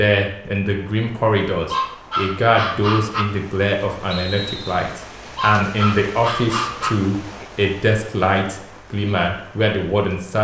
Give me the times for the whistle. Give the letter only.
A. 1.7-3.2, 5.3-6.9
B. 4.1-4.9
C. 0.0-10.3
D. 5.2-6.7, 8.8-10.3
B.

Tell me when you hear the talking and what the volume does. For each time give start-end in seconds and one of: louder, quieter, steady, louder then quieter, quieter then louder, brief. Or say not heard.
0.0-10.3 steady.